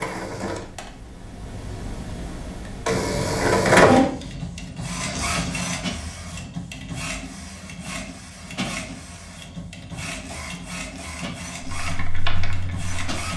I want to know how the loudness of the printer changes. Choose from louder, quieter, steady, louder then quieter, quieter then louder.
louder then quieter.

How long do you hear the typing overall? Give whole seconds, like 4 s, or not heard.
2 s.